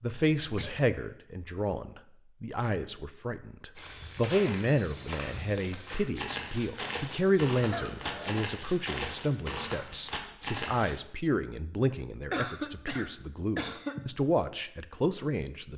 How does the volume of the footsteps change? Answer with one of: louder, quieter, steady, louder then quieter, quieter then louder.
steady.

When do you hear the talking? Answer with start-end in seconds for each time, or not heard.
0.0-15.7.